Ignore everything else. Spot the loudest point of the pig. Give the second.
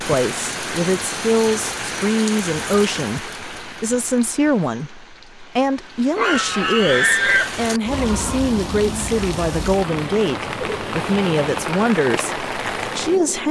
7 s.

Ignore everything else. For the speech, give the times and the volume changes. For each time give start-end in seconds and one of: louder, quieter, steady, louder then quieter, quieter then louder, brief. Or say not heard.
0.0-13.4 steady.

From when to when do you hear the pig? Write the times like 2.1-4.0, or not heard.
6.2-8.4.